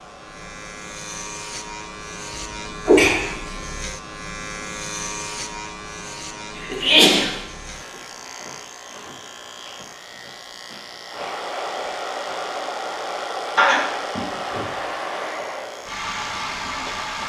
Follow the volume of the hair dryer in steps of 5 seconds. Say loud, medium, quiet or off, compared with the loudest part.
quiet, quiet, loud, loud.